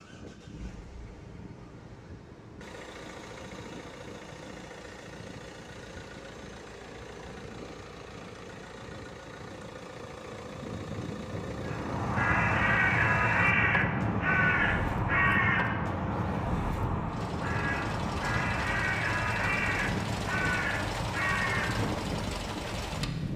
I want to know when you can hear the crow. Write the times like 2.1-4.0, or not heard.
11.7-22.2.